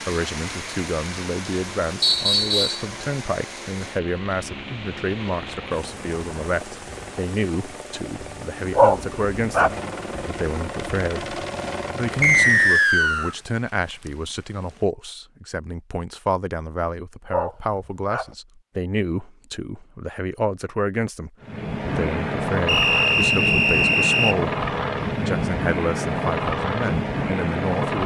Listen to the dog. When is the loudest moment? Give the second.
9 s.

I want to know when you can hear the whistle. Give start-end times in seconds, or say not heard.
2.0-2.9, 12.2-13.3, 22.6-24.4.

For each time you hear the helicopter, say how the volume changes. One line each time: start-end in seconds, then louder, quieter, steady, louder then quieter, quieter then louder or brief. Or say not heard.
0.1-12.9 louder
21.4-28.0 steady.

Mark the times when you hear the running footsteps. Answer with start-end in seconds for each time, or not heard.
not heard.